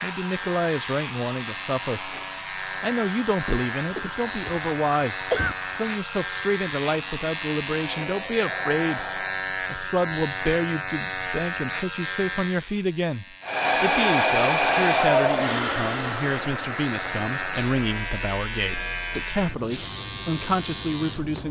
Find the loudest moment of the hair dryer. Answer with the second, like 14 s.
15 s.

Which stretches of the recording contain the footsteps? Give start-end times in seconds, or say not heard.
not heard.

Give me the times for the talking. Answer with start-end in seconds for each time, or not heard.
0.0-21.4.